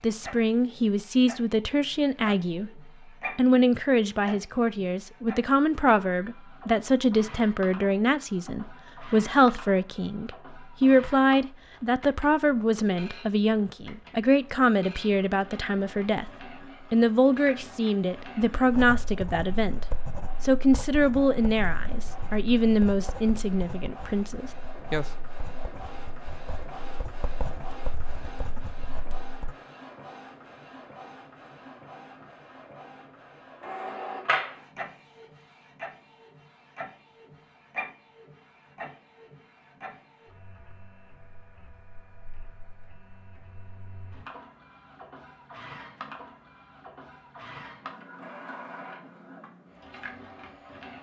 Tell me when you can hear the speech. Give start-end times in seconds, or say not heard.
0.0-16.3, 16.9-25.1.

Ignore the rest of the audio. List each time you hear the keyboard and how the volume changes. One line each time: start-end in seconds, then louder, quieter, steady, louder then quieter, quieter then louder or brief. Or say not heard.
not heard.